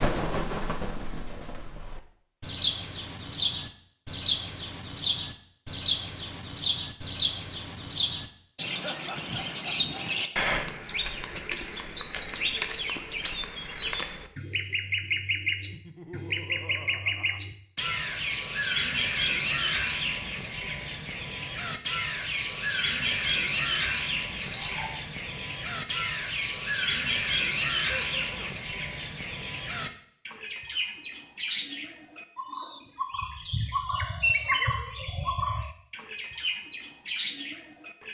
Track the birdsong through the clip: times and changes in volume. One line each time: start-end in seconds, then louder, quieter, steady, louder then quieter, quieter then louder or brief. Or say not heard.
0.0-38.0 steady.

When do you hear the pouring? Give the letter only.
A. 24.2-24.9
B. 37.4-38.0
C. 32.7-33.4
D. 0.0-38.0
A.